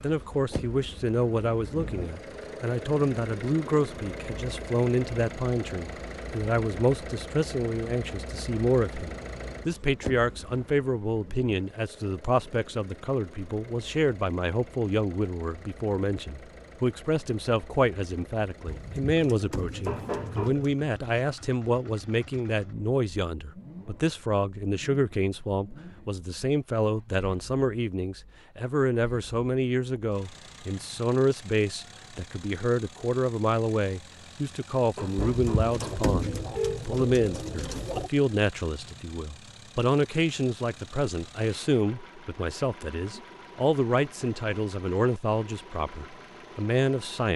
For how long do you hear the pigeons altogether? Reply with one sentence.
You can hear the pigeons for 5 seconds altogether.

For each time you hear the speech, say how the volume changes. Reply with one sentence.
The speech can be heard from 0.0 to 47.3 s, at a steady volume.